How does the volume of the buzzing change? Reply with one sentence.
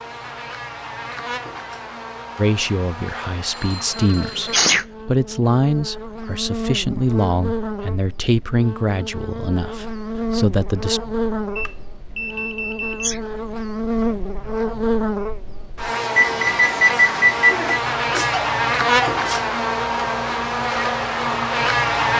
The volume of the buzzing goes up.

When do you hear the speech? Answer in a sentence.
The speech can be heard from 2.4 to 11.1 s.